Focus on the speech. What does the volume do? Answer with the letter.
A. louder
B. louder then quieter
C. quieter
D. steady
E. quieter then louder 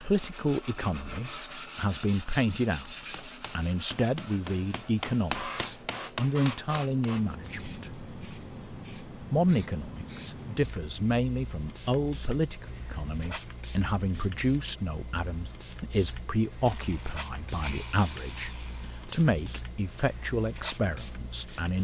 D.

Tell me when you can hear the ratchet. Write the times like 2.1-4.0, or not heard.
16.6-19.2.